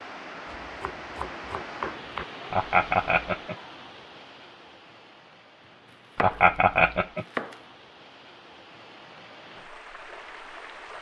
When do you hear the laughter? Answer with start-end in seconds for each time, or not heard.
2.5-3.5, 6.2-7.2.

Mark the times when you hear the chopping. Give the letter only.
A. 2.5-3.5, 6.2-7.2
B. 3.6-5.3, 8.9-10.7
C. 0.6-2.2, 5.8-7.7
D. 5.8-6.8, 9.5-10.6
C.